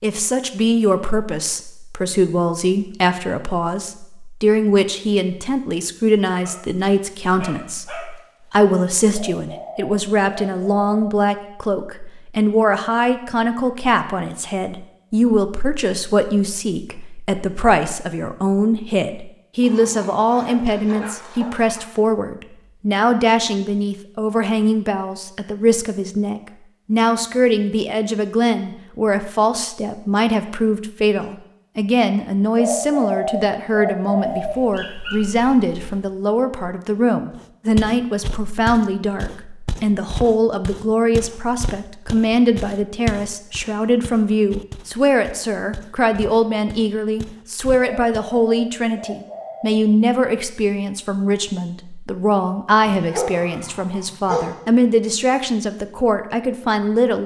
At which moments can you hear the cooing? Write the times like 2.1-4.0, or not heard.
9.1-11.1, 32.5-34.5, 47.8-49.8.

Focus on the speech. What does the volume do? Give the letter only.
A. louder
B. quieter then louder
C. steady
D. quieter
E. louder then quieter
C.